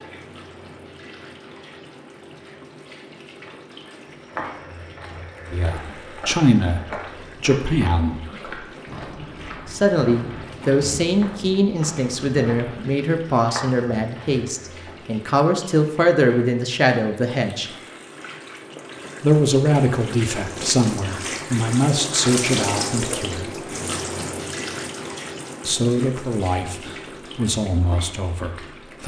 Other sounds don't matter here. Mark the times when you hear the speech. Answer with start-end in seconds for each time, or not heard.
5.5-8.2, 9.7-17.7, 19.2-23.6, 25.6-29.0.